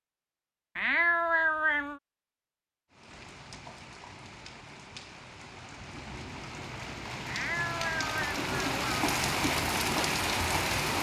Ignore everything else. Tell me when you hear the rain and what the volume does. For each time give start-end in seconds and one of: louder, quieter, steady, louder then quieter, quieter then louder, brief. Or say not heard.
2.9-10.9 louder.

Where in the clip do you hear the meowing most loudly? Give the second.
1 s.